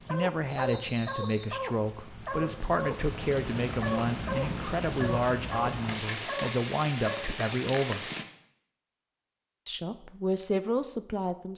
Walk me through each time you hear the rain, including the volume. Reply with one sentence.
The rain can be heard from 0.0 to 8.2 s, getting louder.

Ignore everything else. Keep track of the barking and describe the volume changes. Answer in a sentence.
The loudness of the barking stays about the same.